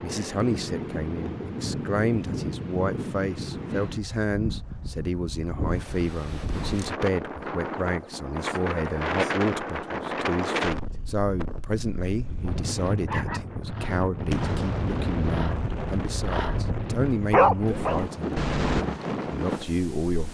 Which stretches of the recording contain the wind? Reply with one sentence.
You can hear the wind from 0.0 to 20.2 s.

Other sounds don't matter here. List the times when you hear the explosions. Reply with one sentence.
The explosions can be heard from 14.3 to 16.9 s.